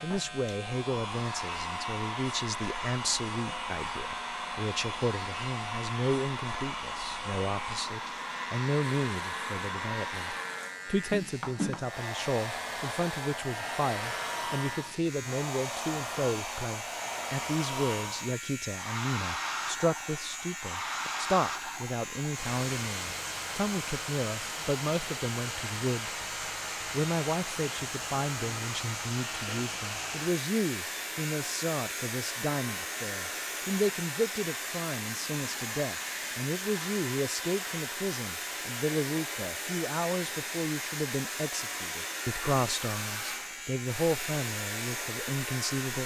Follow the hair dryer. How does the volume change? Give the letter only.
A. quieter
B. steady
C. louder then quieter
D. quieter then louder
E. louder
B.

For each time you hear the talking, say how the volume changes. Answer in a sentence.
You can hear the talking from 0.0 to 26.1 s, at a steady volume; and from 26.9 to 46.0 s, at a steady volume.